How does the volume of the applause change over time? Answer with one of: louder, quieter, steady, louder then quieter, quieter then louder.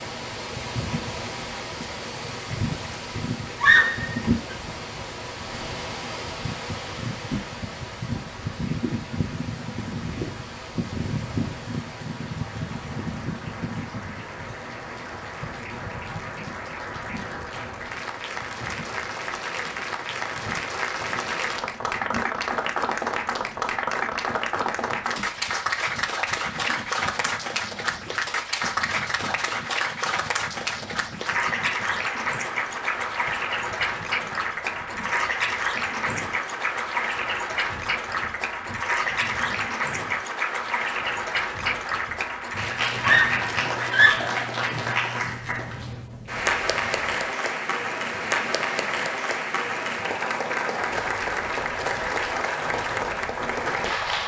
louder.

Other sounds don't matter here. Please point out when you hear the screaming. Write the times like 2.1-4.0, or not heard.
3.5-4.3, 43.0-44.5.